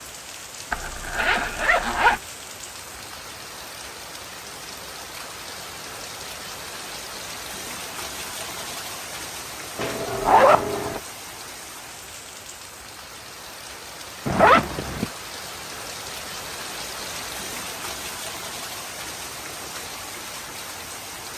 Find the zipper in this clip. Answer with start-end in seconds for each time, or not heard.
0.7-2.2, 9.8-11.0, 14.2-15.1.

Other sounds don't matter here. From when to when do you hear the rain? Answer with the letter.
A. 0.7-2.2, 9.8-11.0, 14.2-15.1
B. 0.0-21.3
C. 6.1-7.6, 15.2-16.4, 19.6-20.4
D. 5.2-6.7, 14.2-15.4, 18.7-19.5
B.